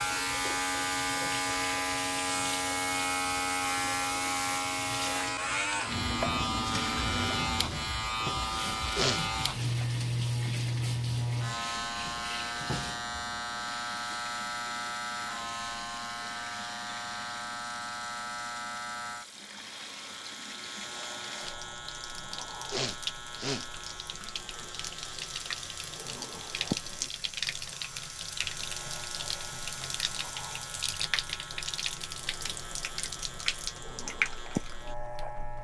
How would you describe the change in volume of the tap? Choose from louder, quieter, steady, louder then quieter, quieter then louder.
quieter then louder.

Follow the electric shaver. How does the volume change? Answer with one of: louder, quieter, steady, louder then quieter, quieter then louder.
quieter.